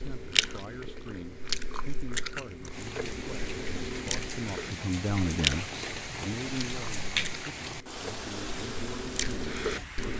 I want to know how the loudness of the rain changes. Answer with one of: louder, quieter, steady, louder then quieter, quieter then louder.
louder then quieter.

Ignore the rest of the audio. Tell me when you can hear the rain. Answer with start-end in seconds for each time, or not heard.
2.6-10.1.